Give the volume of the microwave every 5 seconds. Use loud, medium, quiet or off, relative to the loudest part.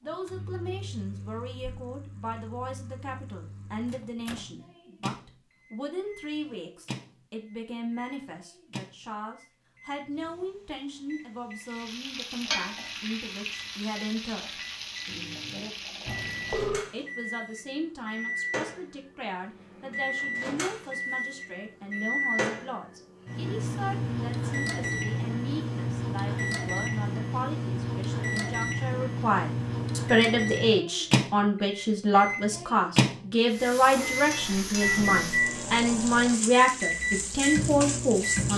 quiet, quiet, quiet, medium, loud, loud, loud, loud.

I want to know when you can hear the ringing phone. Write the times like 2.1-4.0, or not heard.
16.1-16.9.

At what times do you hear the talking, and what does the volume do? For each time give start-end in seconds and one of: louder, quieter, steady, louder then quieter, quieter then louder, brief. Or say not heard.
0.0-14.6 steady
16.9-38.5 louder.